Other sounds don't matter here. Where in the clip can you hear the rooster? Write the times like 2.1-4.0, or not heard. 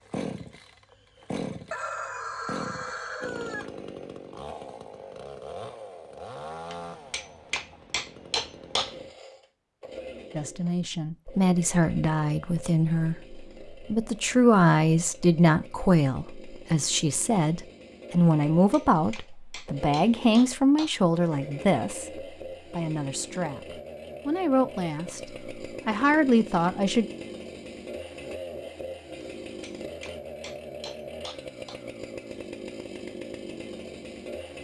1.7-3.7.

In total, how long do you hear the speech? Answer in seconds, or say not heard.
17 s.